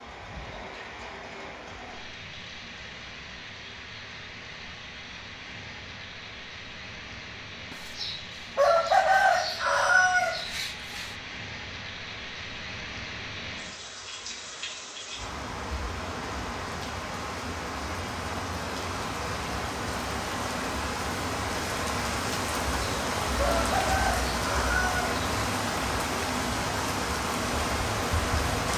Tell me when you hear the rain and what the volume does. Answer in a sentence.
The rain can be heard from 0.0 to 28.7 s, getting louder.